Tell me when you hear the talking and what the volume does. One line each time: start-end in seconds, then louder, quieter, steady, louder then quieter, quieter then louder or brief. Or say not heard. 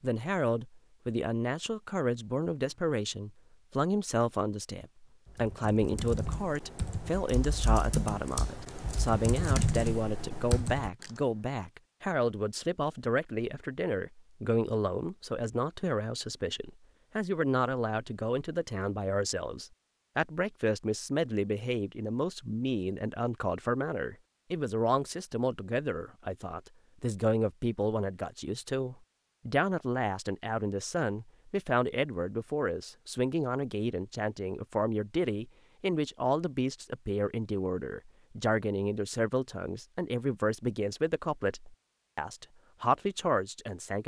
0.0-44.0 steady.